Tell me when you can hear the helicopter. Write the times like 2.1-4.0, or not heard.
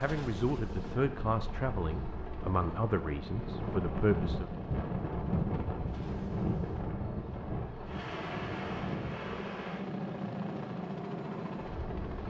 0.0-12.2.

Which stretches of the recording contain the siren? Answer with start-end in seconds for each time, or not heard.
not heard.